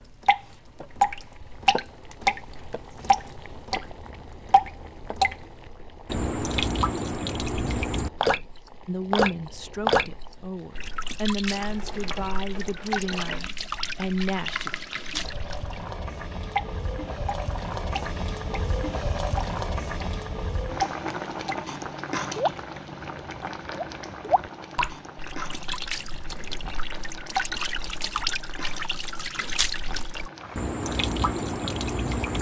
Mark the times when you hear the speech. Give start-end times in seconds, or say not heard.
8.8-14.7.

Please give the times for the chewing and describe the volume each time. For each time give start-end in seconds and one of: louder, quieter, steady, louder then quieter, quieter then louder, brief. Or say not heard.
not heard.